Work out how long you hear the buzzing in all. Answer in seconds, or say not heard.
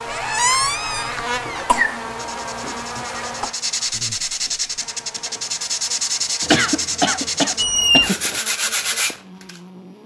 10 s.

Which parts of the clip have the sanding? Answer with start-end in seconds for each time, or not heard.
2.1-9.6.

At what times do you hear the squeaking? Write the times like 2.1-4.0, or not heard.
0.1-1.6, 7.5-8.1.